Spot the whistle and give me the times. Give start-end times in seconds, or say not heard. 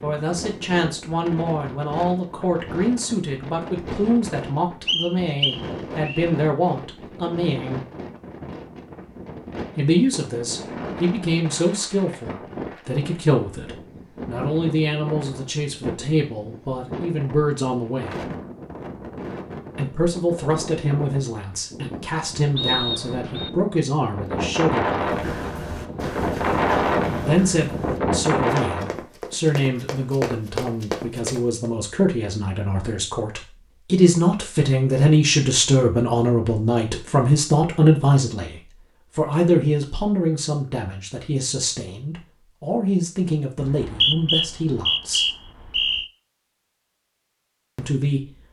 4.8-6.2, 22.6-23.5, 43.6-46.0.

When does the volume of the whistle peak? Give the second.
44 s.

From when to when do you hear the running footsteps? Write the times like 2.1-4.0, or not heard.
25.0-31.7.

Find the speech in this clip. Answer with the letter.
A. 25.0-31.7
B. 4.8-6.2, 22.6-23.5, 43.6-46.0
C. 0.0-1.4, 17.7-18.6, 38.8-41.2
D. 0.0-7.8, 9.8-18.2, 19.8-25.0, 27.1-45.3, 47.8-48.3
D.